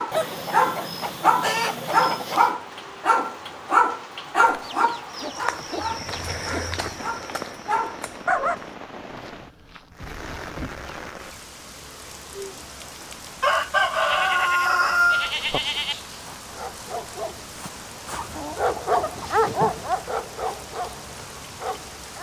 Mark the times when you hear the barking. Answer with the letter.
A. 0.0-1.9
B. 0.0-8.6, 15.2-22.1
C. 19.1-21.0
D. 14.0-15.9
B.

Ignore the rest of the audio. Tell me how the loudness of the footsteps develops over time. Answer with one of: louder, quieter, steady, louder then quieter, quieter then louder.
quieter.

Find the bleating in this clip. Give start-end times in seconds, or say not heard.
14.0-15.9.